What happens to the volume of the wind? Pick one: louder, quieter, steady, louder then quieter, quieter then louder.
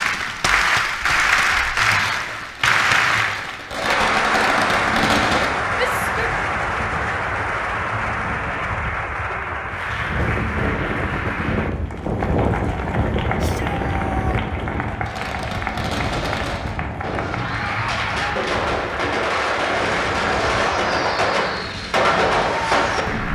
louder then quieter.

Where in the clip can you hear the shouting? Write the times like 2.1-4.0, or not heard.
5.8-6.3, 13.3-14.4.